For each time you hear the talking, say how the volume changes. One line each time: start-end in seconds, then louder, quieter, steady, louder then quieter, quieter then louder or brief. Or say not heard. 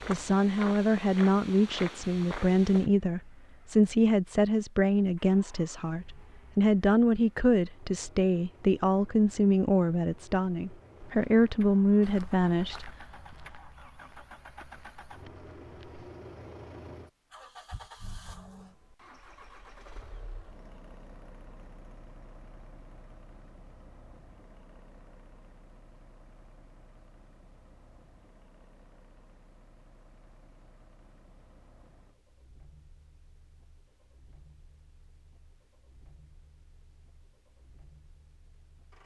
0.1-12.8 steady.